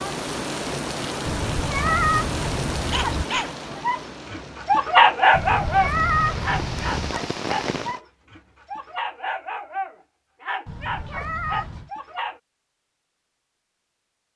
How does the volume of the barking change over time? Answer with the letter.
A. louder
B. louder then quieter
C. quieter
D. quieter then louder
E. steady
C.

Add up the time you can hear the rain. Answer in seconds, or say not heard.
8 s.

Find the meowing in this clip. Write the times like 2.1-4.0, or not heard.
1.2-3.2, 5.3-7.2, 10.7-11.9.